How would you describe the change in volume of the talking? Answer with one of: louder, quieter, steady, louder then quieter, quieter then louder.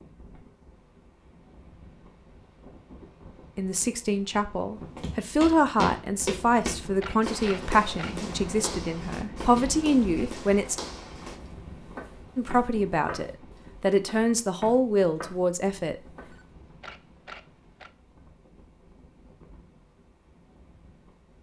steady.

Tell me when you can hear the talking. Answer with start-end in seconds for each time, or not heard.
3.5-10.8, 12.3-16.0.